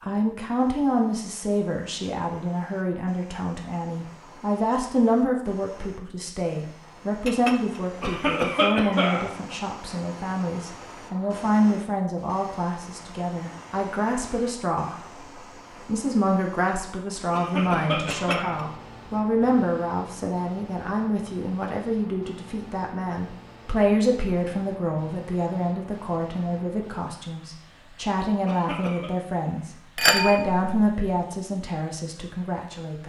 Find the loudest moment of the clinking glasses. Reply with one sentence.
The loudest moment of the clinking glasses is at 30 seconds.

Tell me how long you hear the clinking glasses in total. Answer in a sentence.
You can hear the clinking glasses for 2 seconds altogether.